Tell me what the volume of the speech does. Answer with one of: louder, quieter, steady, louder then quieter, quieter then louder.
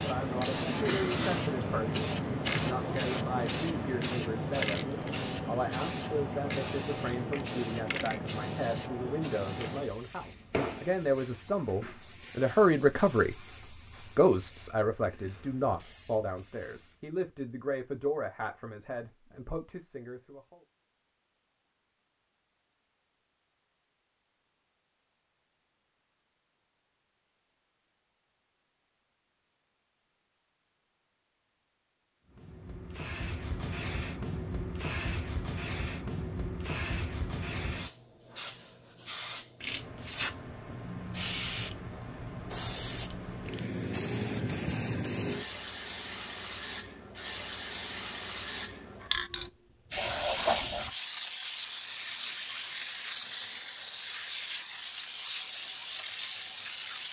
louder then quieter.